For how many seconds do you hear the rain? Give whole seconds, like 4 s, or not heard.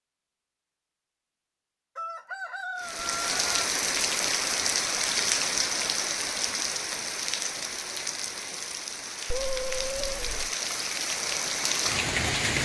10 s.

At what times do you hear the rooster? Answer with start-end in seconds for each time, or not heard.
1.9-3.5.